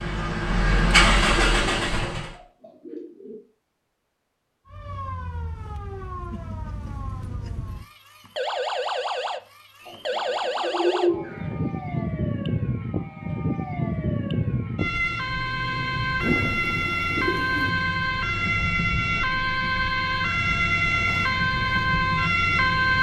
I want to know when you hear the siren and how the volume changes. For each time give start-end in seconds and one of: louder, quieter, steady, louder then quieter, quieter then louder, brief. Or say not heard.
4.7-22.9 louder.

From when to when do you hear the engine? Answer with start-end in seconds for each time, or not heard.
0.0-2.4.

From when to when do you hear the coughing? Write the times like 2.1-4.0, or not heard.
not heard.